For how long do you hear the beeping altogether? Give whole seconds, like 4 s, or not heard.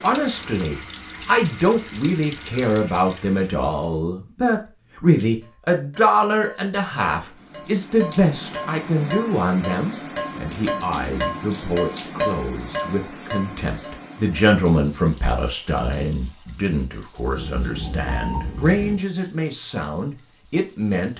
2 s.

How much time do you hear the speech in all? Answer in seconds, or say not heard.
21 s.